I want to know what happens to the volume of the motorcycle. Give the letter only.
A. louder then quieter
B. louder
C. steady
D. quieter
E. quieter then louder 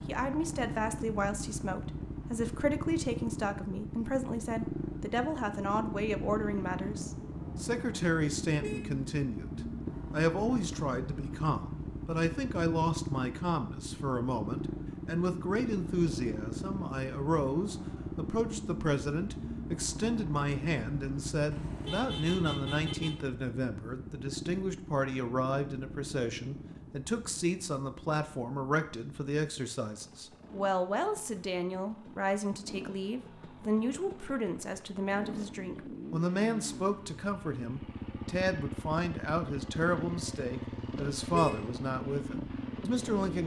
E.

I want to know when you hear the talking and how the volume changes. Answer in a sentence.
You can hear the talking from 0.1 to 43.4 s, at a steady volume.